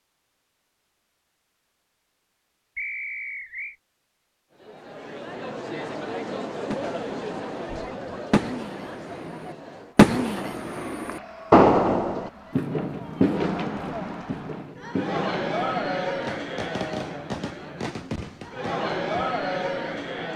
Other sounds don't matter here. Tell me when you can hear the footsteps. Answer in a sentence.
The footsteps can't be heard in this clip.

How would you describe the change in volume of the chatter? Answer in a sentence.
The loudness of the chatter goes down, then up.